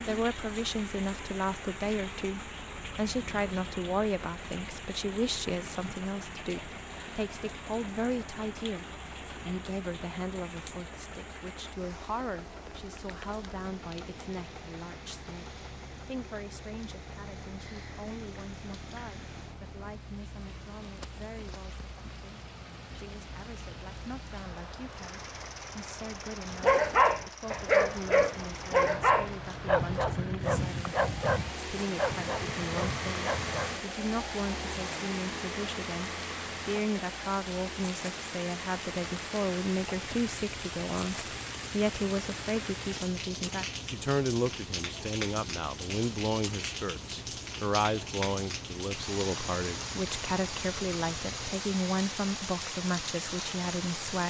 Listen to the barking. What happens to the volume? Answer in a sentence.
The volume of the barking goes down.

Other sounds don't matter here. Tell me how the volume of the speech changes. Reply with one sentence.
The loudness of the speech goes down, then up.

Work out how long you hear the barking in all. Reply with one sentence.
You can hear the barking for 7 seconds altogether.